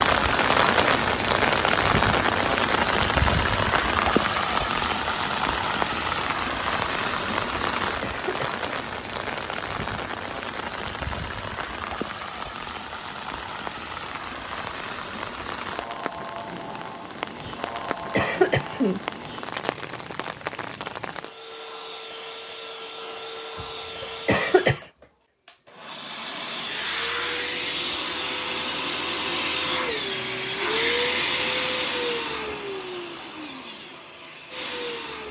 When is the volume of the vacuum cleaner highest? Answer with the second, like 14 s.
31 s.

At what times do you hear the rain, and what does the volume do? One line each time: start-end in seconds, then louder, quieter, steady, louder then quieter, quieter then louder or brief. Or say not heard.
0.0-21.4 quieter.